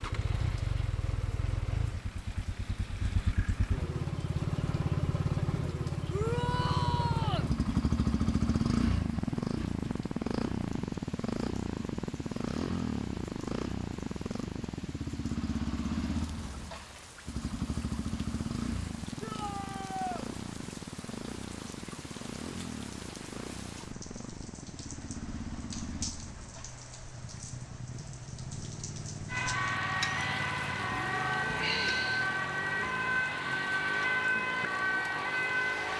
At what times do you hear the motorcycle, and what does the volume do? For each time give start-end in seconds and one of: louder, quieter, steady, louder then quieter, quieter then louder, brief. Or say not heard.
0.0-35.9 quieter.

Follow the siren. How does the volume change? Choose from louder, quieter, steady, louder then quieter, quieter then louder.
steady.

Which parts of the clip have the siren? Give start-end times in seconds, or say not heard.
29.3-35.9.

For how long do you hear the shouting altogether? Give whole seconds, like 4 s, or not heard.
3 s.